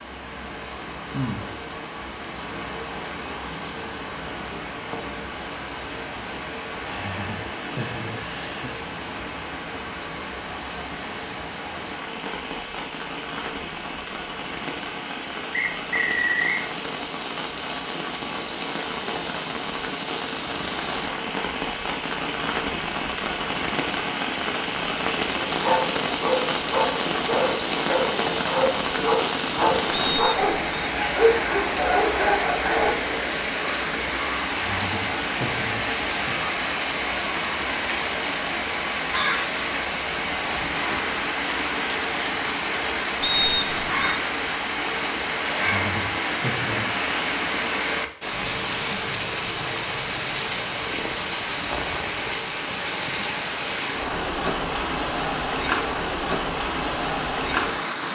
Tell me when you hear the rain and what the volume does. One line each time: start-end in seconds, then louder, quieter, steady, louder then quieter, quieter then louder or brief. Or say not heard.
0.0-58.1 louder.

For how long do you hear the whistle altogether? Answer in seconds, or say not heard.
3 s.